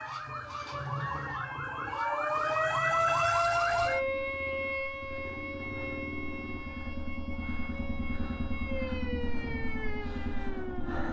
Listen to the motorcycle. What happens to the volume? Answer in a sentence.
The volume of the motorcycle goes down, then up.